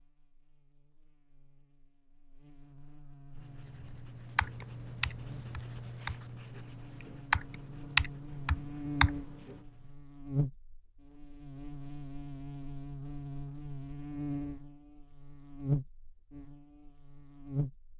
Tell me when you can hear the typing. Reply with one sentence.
The typing can be heard from 4.3 to 6.6 s and from 7.3 to 9.6 s.